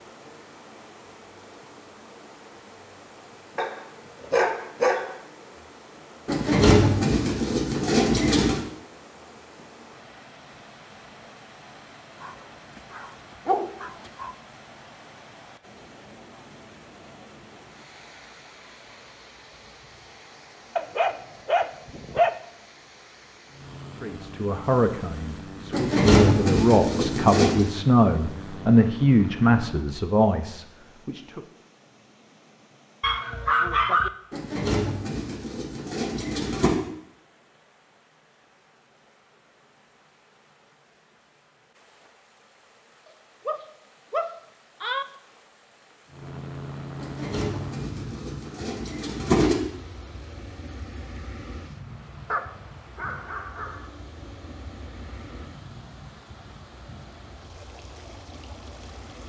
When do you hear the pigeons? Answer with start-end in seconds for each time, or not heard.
6.2-8.6, 25.7-27.6, 34.3-36.8, 47.0-49.5.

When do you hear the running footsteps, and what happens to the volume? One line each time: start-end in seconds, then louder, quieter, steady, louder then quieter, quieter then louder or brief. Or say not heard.
not heard.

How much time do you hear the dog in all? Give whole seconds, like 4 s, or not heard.
10 s.